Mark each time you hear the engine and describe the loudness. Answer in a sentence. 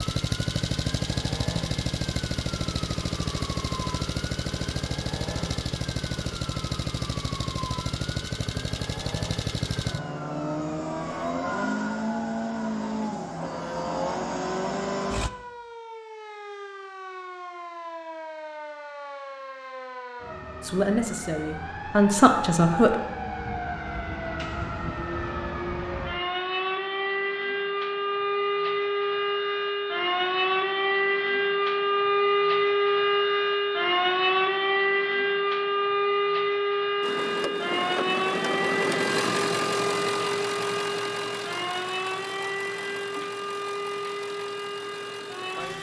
The engine can be heard from 0.0 to 15.3 s, at a steady volume; and from 37.0 to 45.7 s, getting quieter.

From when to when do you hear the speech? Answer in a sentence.
You can hear the speech from 20.6 to 22.9 s.